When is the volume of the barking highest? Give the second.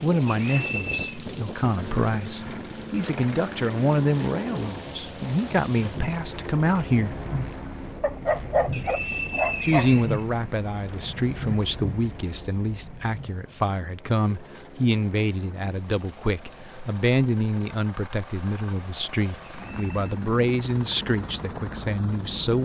8 s.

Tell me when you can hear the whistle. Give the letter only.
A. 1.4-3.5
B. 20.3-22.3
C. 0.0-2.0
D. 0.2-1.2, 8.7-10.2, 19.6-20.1
D.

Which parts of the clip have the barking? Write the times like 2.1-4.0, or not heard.
8.0-10.0.